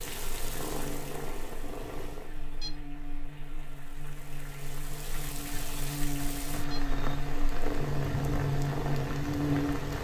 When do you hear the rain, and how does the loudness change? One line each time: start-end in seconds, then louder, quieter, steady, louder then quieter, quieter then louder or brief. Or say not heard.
0.0-9.9 quieter then louder.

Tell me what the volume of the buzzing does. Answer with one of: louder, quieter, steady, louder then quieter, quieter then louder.
louder.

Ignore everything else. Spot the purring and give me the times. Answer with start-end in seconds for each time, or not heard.
0.0-2.3, 7.4-9.9.